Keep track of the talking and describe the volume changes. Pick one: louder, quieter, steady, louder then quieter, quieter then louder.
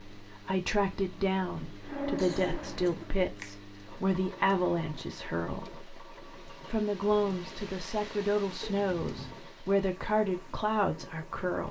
steady.